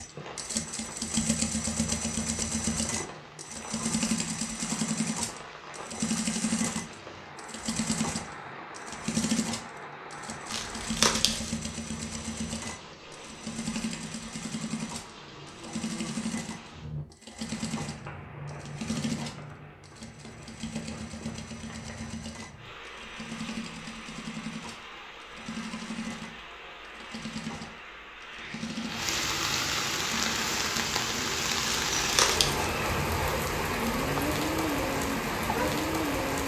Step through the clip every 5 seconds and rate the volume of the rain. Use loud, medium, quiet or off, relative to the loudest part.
quiet, quiet, quiet, quiet, quiet, medium, loud, loud.